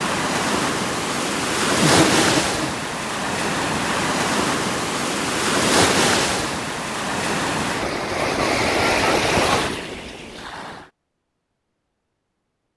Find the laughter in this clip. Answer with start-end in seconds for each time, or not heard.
1.8-2.7.